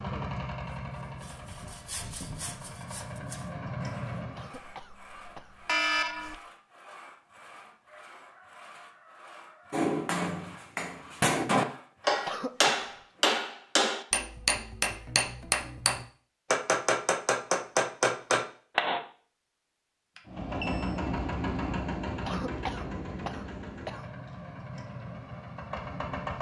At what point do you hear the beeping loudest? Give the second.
6 s.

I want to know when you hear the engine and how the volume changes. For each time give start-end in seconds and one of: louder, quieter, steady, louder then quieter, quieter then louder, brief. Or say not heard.
0.0-4.5 quieter then louder
20.2-26.3 quieter.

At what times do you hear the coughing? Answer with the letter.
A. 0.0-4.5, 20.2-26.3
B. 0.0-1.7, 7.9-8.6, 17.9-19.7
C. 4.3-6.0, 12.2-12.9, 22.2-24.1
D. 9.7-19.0
C.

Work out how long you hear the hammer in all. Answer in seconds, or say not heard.
9 s.